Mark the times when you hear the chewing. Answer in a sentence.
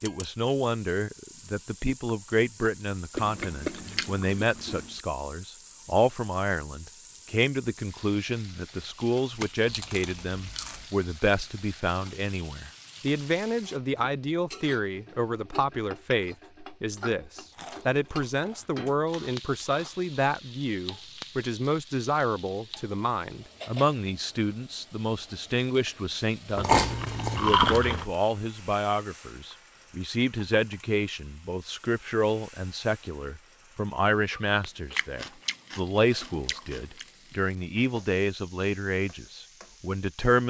You can hear the chewing from 3.1 to 5.0 s, from 9.7 to 10.8 s, from 17.5 to 20.1 s, from 26.6 to 28.1 s and from 35.0 to 37.0 s.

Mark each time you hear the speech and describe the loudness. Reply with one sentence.
You can hear the speech from 0.0 to 40.4 s, at a steady volume.